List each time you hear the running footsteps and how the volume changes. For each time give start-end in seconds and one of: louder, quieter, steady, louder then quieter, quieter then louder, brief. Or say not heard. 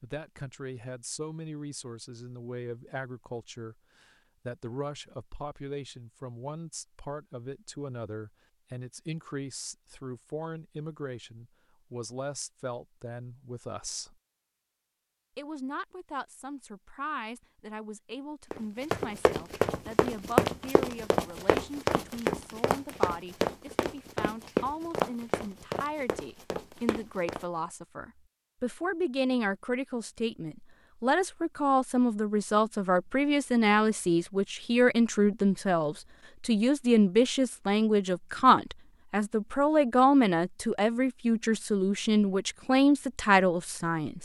18.5-27.4 quieter.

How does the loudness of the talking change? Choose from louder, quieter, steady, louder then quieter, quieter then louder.
louder.